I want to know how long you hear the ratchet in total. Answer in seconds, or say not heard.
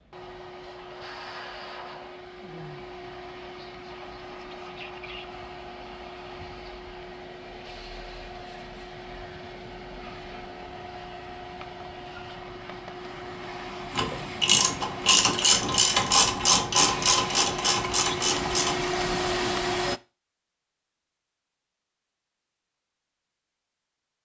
5 s.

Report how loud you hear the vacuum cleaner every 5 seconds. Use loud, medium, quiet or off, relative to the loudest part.
medium, medium, medium, loud, off.